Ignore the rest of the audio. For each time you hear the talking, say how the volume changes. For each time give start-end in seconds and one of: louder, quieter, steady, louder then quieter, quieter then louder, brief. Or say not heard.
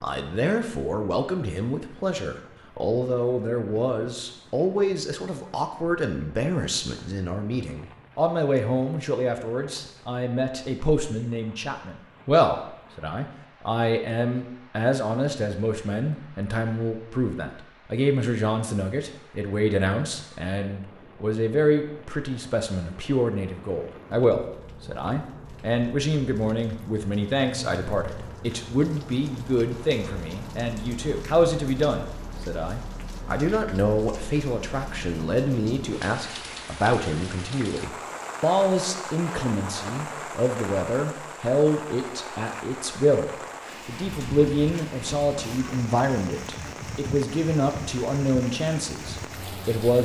0.0-50.0 steady.